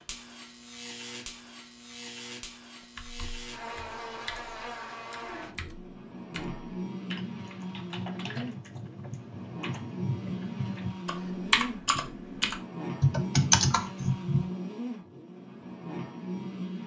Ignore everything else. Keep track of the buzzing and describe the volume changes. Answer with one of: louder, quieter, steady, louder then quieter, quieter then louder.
louder.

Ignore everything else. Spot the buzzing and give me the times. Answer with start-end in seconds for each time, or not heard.
0.0-16.8.